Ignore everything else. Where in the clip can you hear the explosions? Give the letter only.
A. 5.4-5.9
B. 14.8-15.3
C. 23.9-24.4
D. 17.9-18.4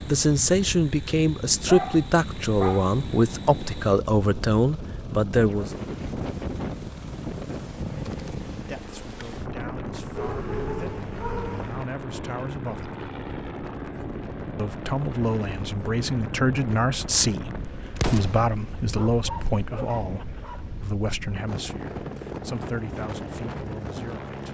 D.